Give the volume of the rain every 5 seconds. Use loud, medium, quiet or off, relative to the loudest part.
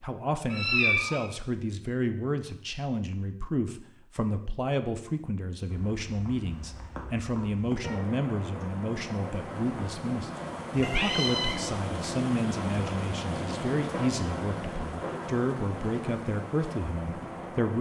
off, medium, loud, loud.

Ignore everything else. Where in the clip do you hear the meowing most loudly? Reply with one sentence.
The volume of the meowing peaks at 1 second.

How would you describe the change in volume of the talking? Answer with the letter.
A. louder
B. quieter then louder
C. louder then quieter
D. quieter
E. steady
E.